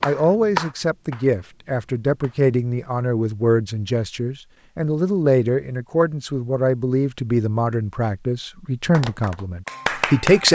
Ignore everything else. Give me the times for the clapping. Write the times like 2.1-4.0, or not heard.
0.0-2.5, 8.9-10.5.